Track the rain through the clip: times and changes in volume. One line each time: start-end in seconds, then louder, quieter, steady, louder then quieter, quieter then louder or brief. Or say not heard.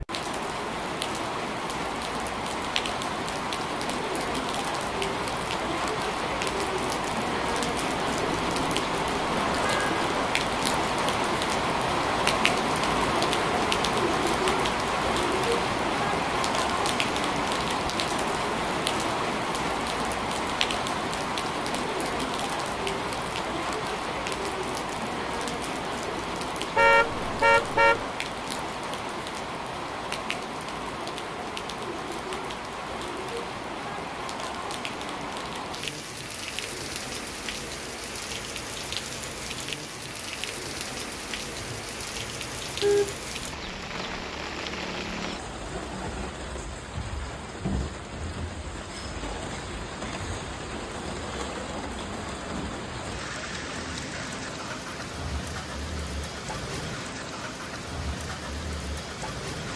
0.0-59.7 quieter.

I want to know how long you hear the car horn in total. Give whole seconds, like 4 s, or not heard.
5 s.